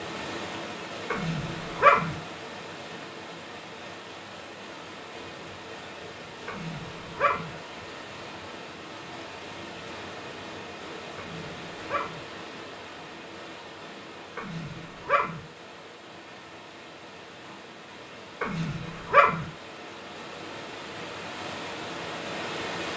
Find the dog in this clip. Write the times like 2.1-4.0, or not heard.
1.1-2.1, 6.5-7.5, 11.2-12.2, 14.3-15.4, 18.4-19.4.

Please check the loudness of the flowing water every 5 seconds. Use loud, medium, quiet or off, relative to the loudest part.
loud, medium, medium, medium, loud.